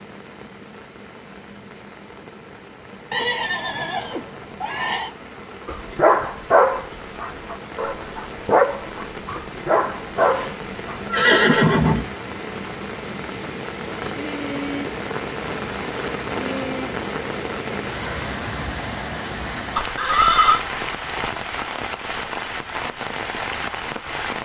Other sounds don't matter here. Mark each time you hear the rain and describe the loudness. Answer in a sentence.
You can hear the rain from 0.0 to 24.4 s, getting louder.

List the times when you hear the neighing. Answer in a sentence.
You can hear the neighing from 3.1 to 5.2 s, from 10.1 to 12.1 s and from 19.8 to 20.6 s.